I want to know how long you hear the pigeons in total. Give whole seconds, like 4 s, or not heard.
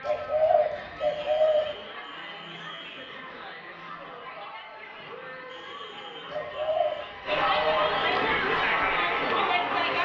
3 s.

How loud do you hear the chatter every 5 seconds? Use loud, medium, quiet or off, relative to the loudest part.
quiet, loud.